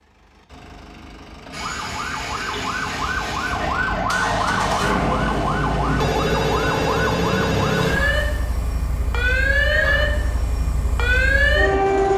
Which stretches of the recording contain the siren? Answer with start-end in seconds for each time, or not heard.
1.5-12.1.